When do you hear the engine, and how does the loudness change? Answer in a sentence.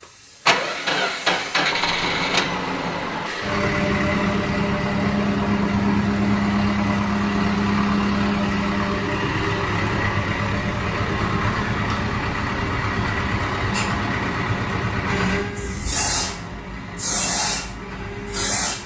You can hear the engine from 0.0 to 18.8 s, getting quieter.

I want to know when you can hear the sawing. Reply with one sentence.
You can't hear the sawing here.